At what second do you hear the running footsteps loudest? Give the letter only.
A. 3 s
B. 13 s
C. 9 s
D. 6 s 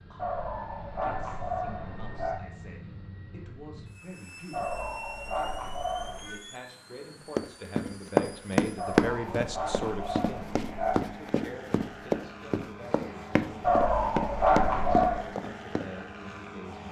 C.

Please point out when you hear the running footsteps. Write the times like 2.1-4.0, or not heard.
7.3-15.8.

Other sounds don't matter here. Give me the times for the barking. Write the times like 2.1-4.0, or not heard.
0.1-2.4, 4.5-6.4, 8.8-11.0, 13.6-15.2.